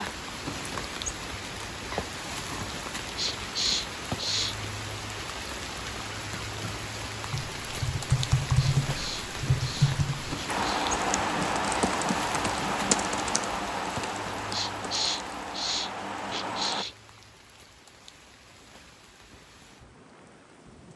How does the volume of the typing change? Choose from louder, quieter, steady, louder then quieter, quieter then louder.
quieter.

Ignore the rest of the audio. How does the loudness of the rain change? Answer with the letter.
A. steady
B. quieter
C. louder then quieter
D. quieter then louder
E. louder
B.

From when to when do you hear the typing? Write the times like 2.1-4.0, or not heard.
7.3-16.9.